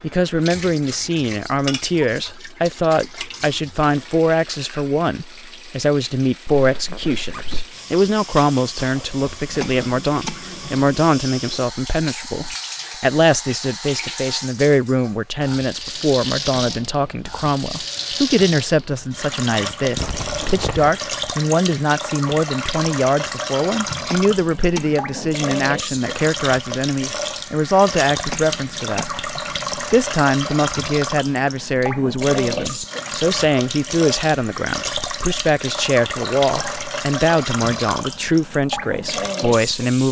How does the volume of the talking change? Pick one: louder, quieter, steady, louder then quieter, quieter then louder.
steady.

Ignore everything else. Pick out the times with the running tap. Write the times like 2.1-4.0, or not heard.
0.0-40.0.